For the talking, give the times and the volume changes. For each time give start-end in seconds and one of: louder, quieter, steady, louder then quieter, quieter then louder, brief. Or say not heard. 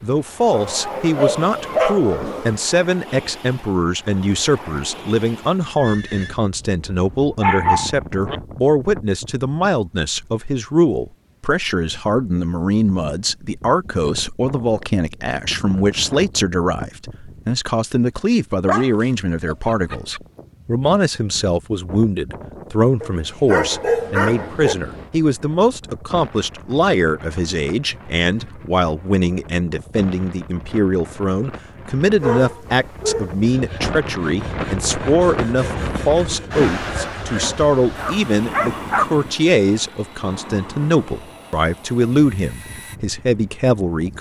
0.0-44.1 steady.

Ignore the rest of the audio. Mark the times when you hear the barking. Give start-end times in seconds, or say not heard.
0.5-2.5, 7.4-8.4, 18.6-20.2, 23.0-24.8, 32.2-33.4, 38.0-39.0.